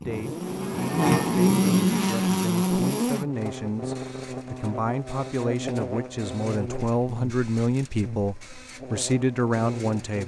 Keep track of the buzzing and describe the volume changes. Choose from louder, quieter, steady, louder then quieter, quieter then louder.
quieter.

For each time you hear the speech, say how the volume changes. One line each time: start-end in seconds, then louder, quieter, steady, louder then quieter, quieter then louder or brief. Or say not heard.
0.1-10.2 louder.